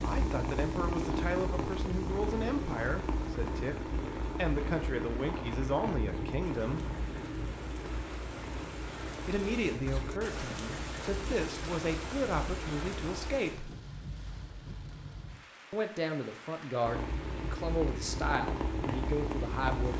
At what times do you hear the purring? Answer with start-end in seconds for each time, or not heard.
0.0-13.4, 16.8-19.9.